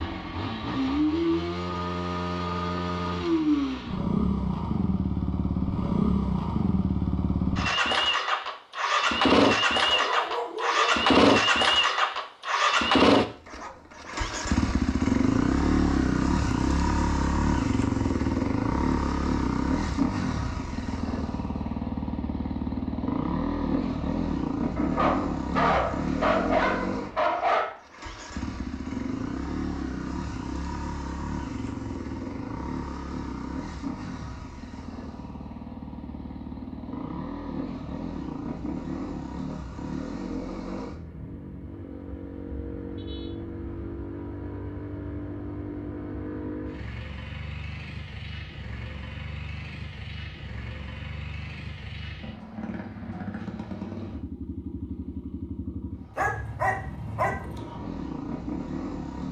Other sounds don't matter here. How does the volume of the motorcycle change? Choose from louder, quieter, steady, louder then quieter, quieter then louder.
quieter.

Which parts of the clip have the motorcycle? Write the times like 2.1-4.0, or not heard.
0.0-59.2.